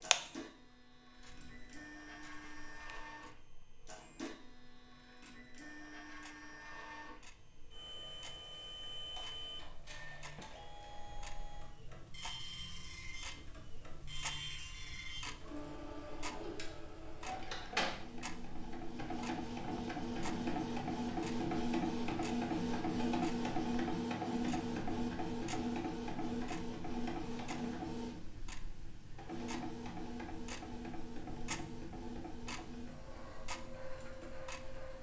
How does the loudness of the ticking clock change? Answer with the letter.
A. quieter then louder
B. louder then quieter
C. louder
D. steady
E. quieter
A.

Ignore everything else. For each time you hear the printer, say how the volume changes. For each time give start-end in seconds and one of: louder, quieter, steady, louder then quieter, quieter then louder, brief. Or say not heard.
0.0-34.9 louder then quieter.